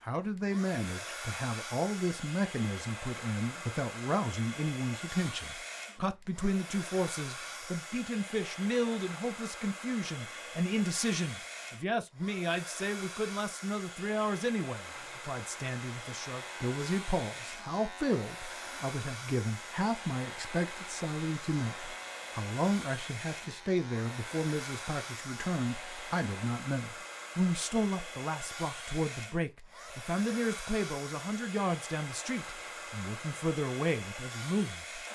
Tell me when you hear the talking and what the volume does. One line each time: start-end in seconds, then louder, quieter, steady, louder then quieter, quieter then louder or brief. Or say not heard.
0.0-35.0 steady.